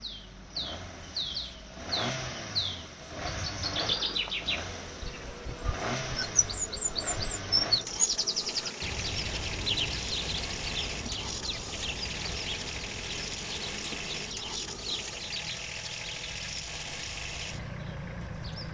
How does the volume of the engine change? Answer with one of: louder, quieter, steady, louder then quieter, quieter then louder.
steady.